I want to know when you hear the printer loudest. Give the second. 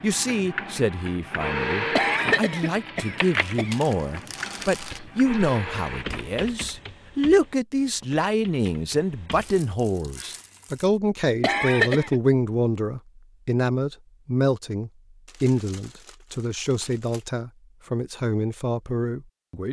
2 s.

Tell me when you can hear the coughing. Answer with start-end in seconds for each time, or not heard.
1.9-3.8, 11.4-12.2.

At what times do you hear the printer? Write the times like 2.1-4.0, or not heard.
0.0-6.4.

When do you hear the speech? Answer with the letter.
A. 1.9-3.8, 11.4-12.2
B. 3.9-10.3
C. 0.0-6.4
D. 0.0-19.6
D.